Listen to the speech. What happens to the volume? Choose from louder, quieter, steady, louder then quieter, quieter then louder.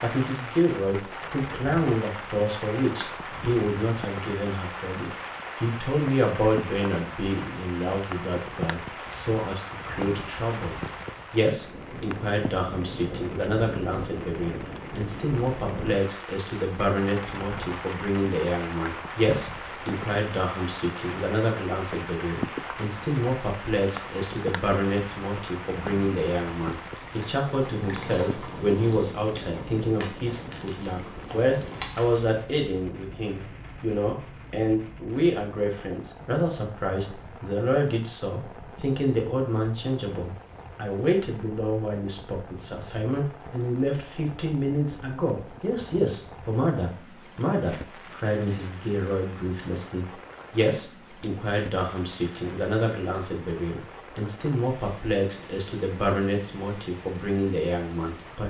steady.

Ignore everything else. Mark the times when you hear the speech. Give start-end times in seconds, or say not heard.
0.0-58.4.